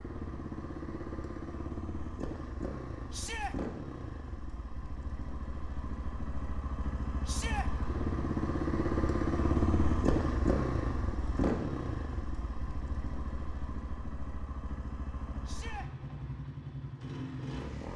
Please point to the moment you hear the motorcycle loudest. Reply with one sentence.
The volume of the motorcycle peaks at 10 seconds.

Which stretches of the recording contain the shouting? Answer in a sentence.
The shouting can be heard from 3.1 to 3.5 s, from 7.2 to 7.7 s and from 15.4 to 15.9 s.